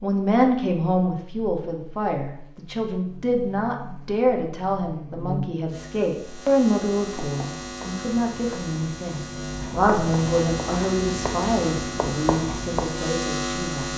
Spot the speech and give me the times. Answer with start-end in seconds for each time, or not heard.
0.0-13.9.